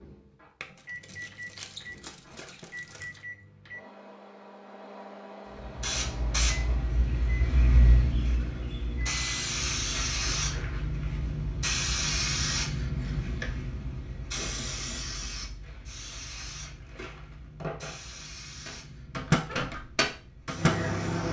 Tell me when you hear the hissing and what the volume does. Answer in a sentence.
The hissing can be heard from 5.6 to 21.2 s, getting quieter.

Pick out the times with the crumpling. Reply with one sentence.
You can hear the crumpling from 0.6 to 3.2 s, from 9.8 to 10.8 s and from 15.6 to 18.3 s.